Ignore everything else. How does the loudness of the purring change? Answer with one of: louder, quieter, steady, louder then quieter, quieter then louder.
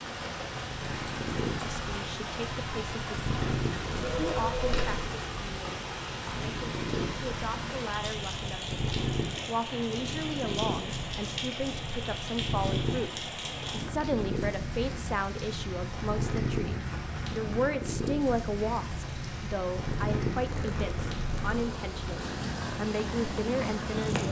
steady.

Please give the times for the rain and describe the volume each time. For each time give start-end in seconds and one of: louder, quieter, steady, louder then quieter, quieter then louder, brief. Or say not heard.
0.0-24.2 steady.